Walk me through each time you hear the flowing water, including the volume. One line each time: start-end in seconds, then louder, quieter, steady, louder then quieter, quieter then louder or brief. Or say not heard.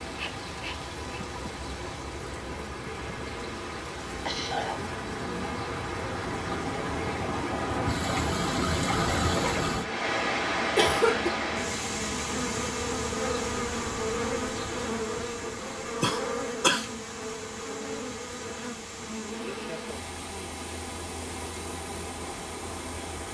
0.0-23.2 louder then quieter.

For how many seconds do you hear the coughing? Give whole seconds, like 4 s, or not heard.
2 s.